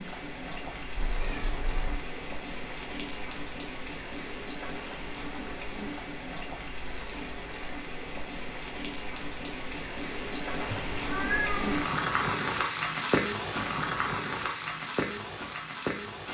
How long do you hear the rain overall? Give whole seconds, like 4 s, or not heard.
16 s.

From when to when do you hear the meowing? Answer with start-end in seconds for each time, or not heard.
0.9-2.0, 10.6-11.8.